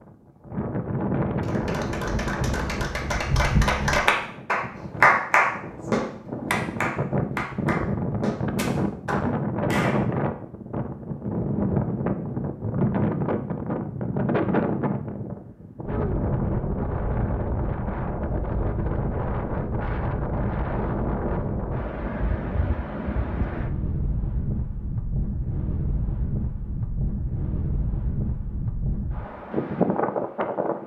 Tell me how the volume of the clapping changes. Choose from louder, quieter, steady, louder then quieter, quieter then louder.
louder then quieter.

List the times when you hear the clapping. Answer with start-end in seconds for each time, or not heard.
1.4-10.0.